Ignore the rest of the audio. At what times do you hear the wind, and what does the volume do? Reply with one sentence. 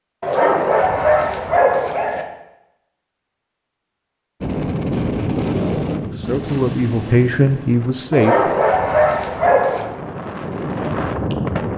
You can hear the wind from 4.4 to 11.7 s, getting quieter then louder.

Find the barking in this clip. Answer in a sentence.
You can hear the barking from 0.2 to 2.2 s and from 8.1 to 9.8 s.